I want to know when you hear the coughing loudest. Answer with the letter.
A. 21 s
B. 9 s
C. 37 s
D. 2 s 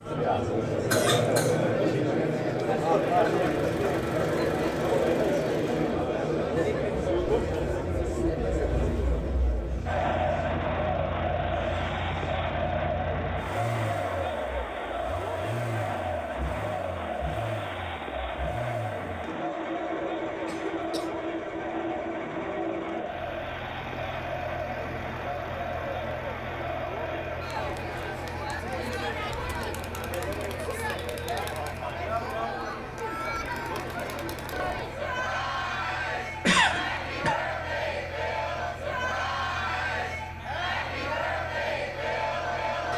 C.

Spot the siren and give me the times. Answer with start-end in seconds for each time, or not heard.
not heard.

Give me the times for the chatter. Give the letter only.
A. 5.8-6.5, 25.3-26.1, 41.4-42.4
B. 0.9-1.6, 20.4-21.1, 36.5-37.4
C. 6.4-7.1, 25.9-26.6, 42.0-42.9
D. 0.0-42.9
D.